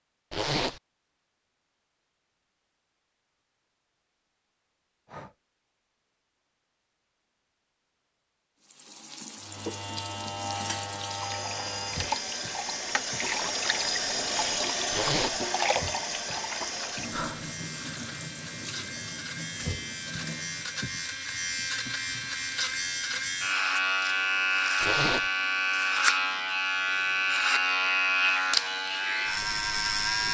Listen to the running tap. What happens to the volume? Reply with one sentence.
The volume of the running tap goes up, then down.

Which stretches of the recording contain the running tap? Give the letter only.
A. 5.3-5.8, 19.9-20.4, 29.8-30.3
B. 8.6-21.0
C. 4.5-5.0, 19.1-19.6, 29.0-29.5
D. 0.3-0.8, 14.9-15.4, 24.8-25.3
B.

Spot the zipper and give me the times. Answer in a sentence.
You can hear the zipper from 0.3 to 0.8 s, from 14.9 to 15.4 s and from 24.8 to 25.3 s.